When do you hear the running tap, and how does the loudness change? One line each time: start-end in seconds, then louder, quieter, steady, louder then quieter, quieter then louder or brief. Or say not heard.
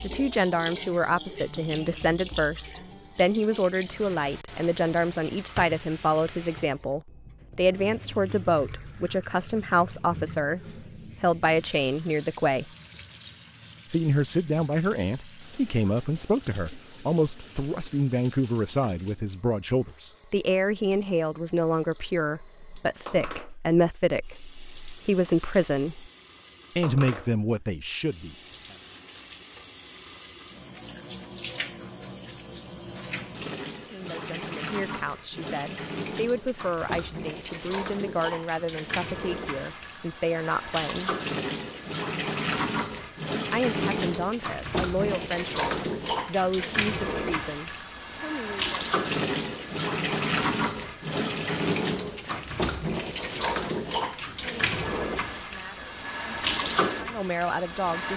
0.0-58.1 quieter then louder.